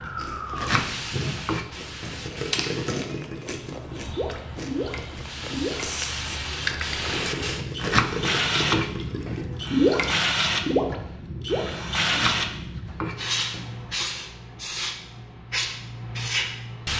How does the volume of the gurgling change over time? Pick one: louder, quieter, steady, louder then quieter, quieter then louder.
louder.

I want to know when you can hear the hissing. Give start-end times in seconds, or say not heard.
0.0-16.9.